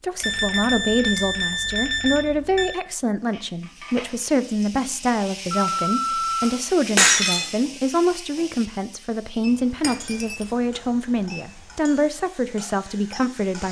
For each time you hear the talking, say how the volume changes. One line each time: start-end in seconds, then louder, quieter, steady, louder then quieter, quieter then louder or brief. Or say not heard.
0.0-13.6 steady.